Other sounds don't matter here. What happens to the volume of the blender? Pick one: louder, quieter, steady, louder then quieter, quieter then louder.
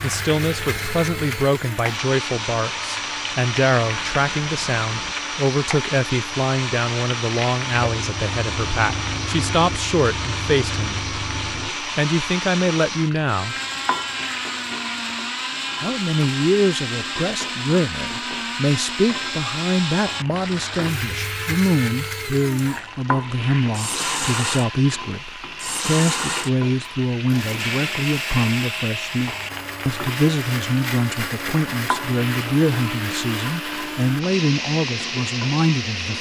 steady.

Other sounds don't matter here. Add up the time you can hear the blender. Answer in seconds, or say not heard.
36 s.